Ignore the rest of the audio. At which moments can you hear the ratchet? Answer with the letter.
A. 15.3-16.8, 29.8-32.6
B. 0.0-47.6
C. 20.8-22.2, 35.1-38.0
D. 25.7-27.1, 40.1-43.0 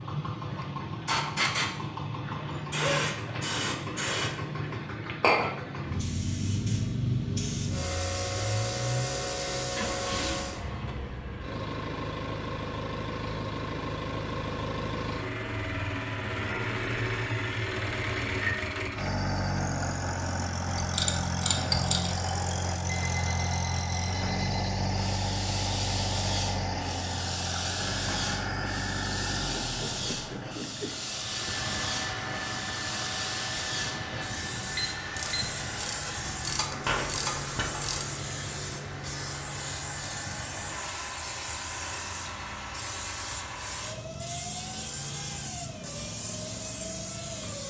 C.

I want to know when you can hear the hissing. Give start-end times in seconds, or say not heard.
0.0-10.6, 24.9-47.6.